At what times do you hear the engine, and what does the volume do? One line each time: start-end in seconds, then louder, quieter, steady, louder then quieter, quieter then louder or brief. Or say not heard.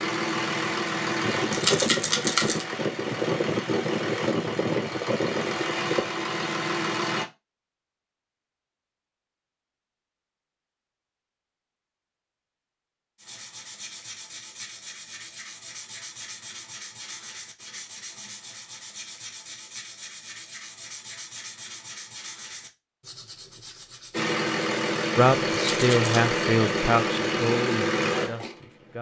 0.0-7.2 steady
24.1-28.9 steady.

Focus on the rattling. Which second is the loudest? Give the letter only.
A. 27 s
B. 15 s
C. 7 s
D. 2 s
D.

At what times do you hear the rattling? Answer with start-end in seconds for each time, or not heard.
1.5-2.6, 25.7-26.1.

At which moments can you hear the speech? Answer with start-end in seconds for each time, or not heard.
25.1-28.9.